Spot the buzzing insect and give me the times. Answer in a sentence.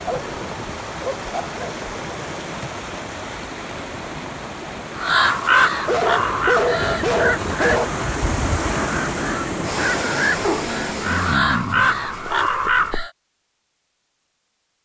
You can't hear the buzzing insect here.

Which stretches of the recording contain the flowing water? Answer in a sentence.
You can hear the flowing water from 0.0 to 11.4 s.